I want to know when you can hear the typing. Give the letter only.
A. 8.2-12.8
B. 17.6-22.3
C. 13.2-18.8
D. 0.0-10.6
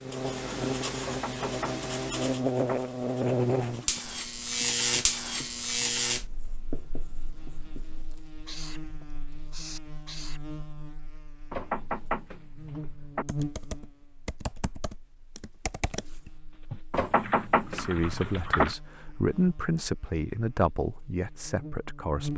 C.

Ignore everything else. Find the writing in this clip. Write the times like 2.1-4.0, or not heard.
0.0-10.6.